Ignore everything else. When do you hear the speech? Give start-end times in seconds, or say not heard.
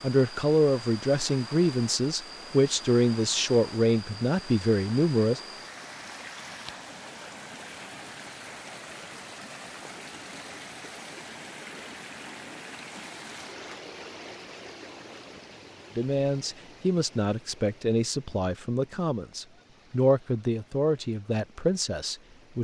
0.0-5.4, 15.9-22.5.